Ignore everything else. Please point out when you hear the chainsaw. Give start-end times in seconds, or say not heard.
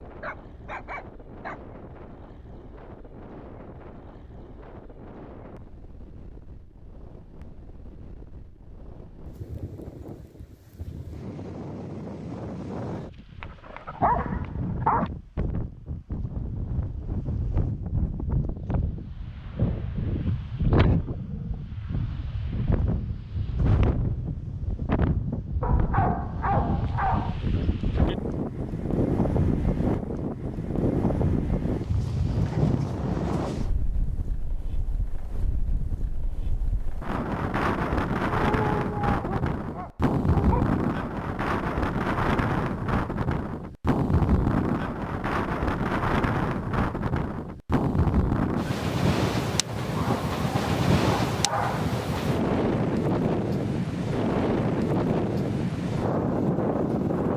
not heard.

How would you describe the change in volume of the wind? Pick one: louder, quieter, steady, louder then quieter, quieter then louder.
louder.